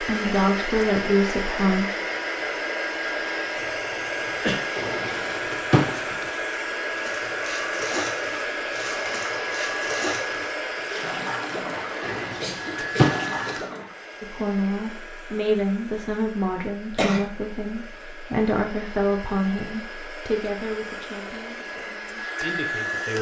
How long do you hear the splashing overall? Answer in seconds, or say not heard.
7 s.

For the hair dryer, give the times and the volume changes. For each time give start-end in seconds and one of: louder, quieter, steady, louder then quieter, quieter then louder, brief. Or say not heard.
0.0-23.1 quieter then louder.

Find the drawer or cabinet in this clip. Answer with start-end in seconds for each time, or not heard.
4.8-6.2, 12.0-13.4.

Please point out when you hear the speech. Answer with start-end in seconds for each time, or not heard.
0.0-1.9, 14.2-23.1.